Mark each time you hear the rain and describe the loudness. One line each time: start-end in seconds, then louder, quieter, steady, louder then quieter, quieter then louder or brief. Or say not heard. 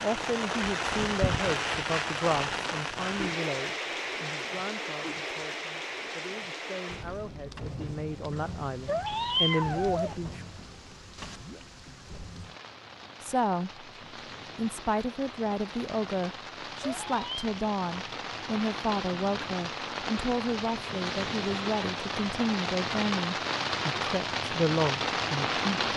0.0-25.9 quieter then louder.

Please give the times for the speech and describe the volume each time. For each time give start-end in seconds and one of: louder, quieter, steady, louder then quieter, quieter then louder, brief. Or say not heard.
0.0-10.4 quieter then louder
13.2-13.8 brief
14.6-25.9 steady.